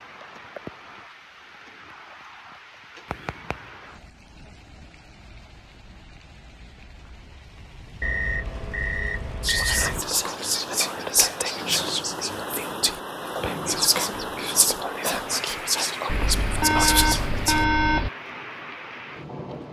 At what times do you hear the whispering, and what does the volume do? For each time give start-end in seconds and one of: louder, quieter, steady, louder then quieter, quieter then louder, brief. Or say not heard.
9.4-17.6 steady.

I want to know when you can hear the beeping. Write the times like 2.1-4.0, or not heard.
3.1-3.5, 8.0-10.1, 16.1-18.1.